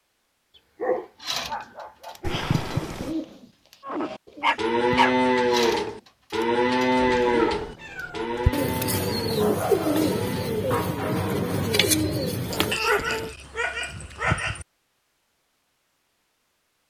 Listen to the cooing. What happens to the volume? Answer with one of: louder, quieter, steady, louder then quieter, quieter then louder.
louder.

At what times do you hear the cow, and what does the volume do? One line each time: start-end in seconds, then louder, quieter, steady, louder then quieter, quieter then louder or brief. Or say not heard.
3.9-10.7 quieter.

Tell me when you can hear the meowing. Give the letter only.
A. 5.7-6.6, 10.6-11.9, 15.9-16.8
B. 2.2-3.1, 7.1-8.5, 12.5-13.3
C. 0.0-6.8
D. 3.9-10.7
B.